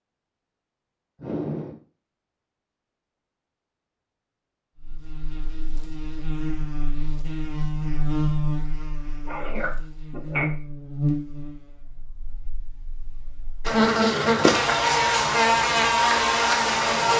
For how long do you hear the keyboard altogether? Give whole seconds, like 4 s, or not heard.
not heard.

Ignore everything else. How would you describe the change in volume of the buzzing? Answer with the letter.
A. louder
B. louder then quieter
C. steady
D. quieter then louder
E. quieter
A.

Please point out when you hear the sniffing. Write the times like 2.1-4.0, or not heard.
1.2-1.8, 9.2-10.5.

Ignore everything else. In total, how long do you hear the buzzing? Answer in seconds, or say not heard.
12 s.